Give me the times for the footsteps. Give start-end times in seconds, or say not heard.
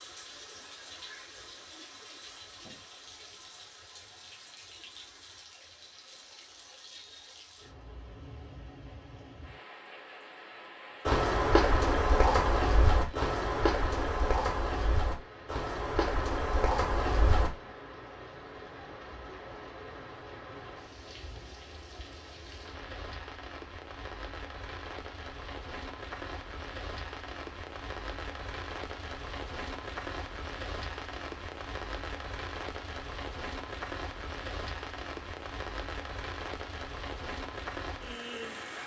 11.1-17.5.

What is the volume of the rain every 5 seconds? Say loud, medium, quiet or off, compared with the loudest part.
medium, medium, medium, medium, medium, loud, loud, loud.